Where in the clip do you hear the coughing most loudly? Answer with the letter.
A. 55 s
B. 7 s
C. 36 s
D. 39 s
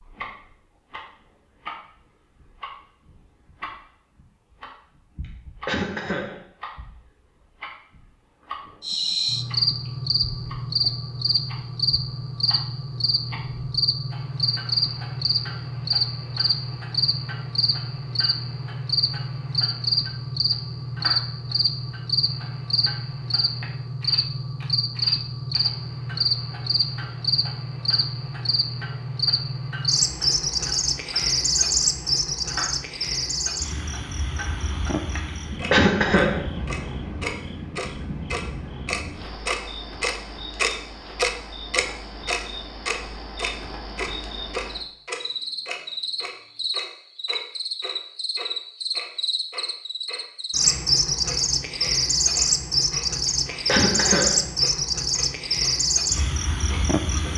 C.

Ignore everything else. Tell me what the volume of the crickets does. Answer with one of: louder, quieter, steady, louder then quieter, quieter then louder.
quieter then louder.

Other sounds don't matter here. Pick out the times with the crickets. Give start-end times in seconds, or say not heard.
8.8-57.3.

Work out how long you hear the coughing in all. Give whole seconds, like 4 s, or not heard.
2 s.